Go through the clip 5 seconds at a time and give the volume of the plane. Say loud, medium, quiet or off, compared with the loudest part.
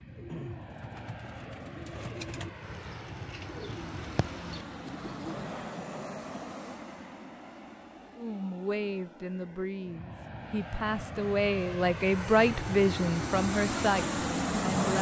medium, medium, loud.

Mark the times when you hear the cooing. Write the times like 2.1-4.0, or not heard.
0.1-5.5.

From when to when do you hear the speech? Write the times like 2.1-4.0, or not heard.
8.2-14.9.